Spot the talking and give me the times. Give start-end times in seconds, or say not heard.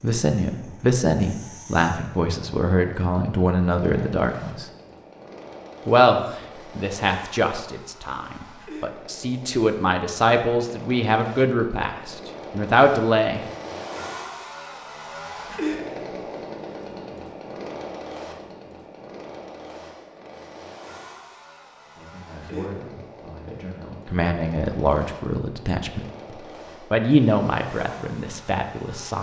0.0-4.7, 5.8-13.4, 21.9-29.1.